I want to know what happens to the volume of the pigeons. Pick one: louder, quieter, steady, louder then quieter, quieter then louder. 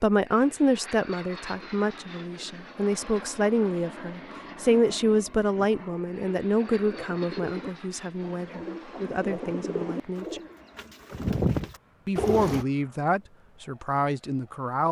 louder.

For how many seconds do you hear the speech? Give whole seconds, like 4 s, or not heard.
13 s.